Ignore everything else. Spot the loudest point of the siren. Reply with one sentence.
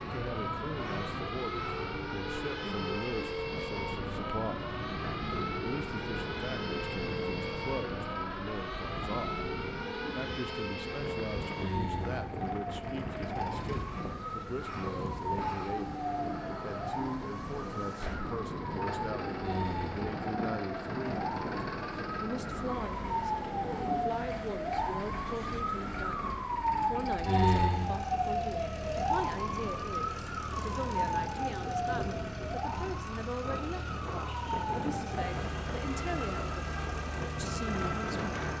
The loudest moment of the siren is at 27 seconds.